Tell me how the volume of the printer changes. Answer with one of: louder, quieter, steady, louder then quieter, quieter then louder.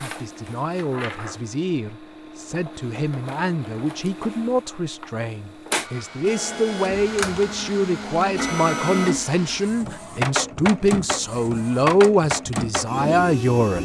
louder.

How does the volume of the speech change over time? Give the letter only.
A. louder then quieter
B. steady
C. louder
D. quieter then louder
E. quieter
C.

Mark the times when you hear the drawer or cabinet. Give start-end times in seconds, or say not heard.
not heard.